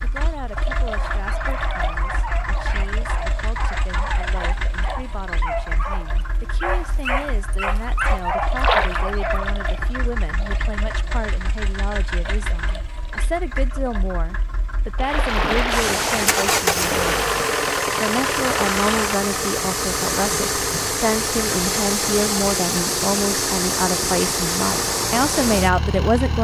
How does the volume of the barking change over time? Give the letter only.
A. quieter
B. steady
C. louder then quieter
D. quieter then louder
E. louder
E.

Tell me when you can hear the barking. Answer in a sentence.
The barking can be heard from 0.8 to 9.9 s.